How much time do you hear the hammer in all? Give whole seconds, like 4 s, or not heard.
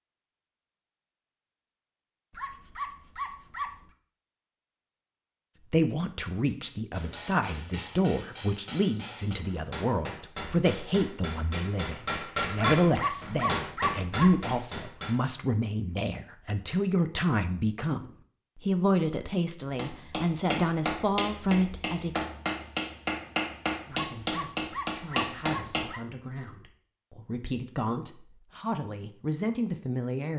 14 s.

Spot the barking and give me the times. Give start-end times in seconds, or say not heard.
2.3-3.9, 12.8-14.4, 23.9-26.0.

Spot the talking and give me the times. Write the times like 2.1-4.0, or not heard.
5.7-22.2, 23.9-30.3.